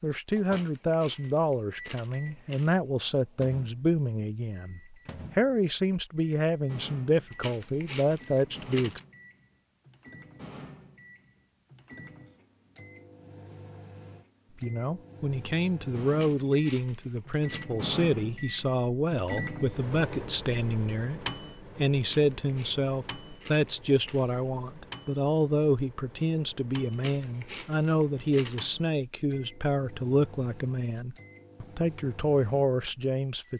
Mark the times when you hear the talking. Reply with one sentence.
The talking can be heard from 0.0 to 9.0 s and from 14.6 to 33.5 s.